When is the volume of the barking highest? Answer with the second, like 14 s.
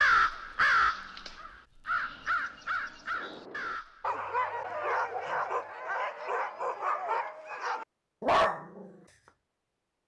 8 s.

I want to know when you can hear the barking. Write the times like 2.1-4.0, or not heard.
3.2-8.9.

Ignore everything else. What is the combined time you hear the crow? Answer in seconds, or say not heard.
4 s.